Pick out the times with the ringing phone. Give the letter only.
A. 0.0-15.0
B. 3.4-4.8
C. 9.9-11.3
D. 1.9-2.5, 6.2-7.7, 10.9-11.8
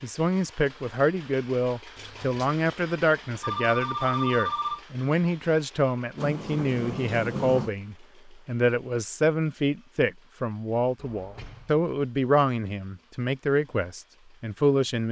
B.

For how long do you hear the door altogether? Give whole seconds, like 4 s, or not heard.
3 s.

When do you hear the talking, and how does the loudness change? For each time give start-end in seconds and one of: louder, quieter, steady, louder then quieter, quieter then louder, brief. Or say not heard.
0.0-15.0 steady.